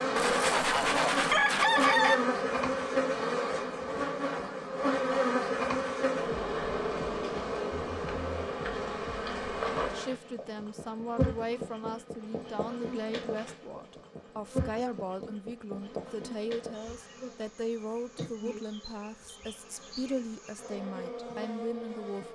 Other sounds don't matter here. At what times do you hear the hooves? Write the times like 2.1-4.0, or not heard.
not heard.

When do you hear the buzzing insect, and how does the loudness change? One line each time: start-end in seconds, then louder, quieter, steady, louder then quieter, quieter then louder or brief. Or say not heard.
0.0-22.2 quieter.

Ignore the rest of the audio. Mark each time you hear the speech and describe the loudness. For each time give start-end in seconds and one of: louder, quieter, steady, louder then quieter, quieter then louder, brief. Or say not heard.
9.9-22.2 steady.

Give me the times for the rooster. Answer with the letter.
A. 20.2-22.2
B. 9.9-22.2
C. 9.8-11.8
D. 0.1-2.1
D.